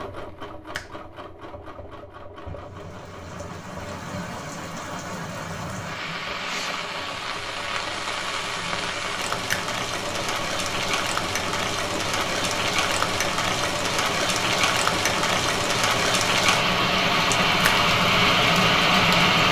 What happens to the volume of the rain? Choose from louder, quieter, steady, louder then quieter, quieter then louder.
louder.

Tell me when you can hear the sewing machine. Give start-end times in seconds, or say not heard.
0.0-19.4.